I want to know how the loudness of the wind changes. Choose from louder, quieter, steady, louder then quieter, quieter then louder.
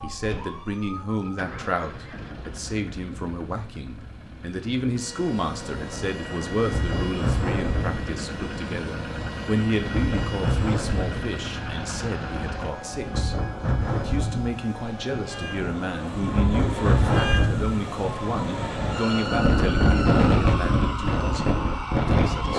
louder.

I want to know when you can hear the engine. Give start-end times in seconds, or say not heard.
0.0-12.7.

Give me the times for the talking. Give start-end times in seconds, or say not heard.
0.0-22.5.